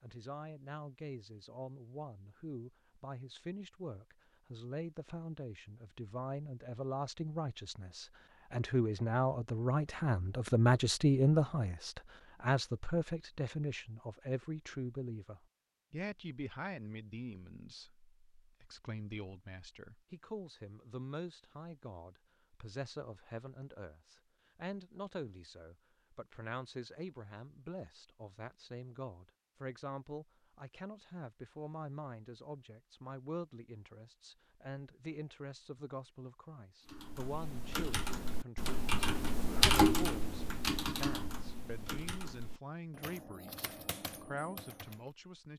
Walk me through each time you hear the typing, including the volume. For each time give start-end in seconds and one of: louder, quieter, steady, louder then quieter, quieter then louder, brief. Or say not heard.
36.9-45.0 louder then quieter.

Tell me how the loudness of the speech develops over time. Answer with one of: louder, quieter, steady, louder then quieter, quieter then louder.
louder then quieter.